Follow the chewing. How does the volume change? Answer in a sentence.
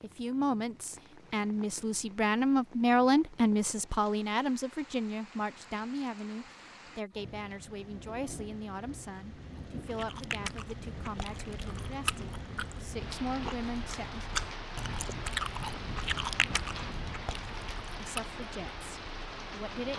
The loudness of the chewing goes up, then down.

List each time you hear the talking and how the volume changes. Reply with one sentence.
You can hear the talking from 0.0 to 14.2 s, getting quieter; and briefly from 18.0 to 19.9 s.